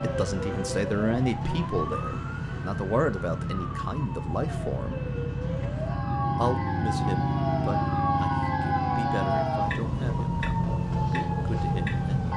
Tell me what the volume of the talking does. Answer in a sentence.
The volume of the talking goes down.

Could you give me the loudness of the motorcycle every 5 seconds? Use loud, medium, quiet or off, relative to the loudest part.
medium, loud, medium.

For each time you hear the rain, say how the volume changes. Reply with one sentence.
The rain can't be heard in this clip.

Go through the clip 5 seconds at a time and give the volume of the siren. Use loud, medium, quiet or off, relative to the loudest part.
medium, loud, loud.